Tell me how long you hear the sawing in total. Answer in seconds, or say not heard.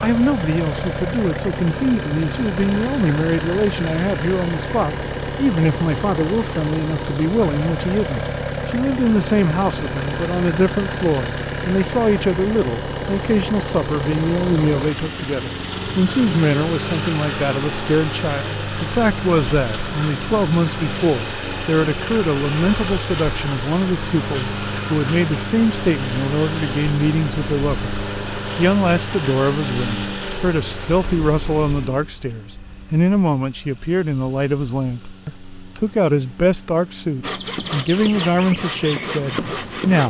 3 s.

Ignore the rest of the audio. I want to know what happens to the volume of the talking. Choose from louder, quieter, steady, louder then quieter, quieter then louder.
steady.